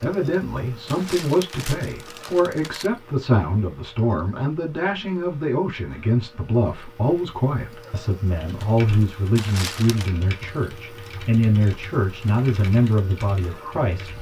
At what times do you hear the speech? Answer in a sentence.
You can hear the speech from 0.0 to 14.1 s.